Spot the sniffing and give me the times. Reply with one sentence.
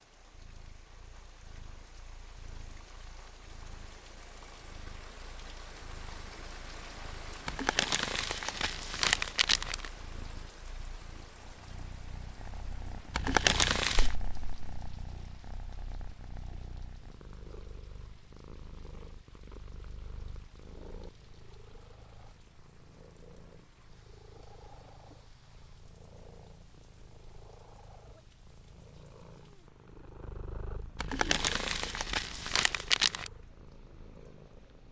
You can't hear the sniffing here.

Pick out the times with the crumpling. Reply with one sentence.
The crumpling can be heard from 7.5 to 9.9 s, from 13.1 to 14.2 s and from 30.9 to 33.3 s.